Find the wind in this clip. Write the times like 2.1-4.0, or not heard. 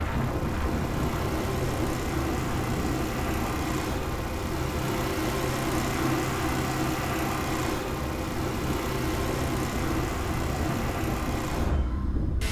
0.0-12.4.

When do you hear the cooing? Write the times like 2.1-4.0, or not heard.
not heard.